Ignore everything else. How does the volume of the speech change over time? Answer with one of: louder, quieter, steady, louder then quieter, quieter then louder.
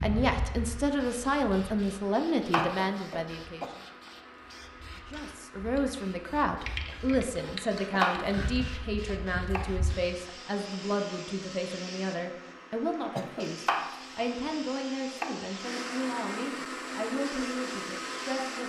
quieter.